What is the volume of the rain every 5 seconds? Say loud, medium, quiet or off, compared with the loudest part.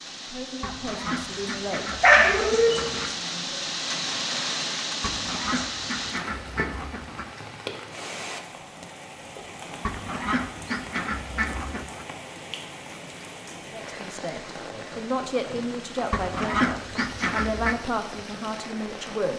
loud, loud, medium, medium.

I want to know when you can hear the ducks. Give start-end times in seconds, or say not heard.
0.6-3.1, 5.0-7.3, 9.8-12.1, 16.1-17.8.